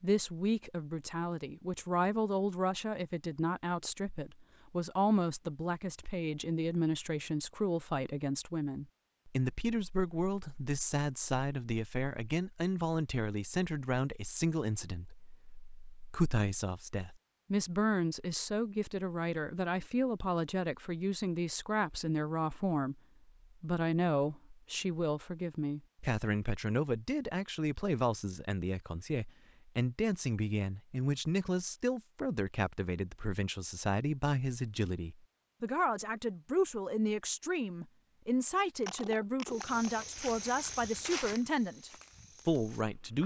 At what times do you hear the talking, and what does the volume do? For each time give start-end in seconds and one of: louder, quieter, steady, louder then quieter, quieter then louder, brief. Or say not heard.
0.0-23.0 steady
23.6-43.2 steady.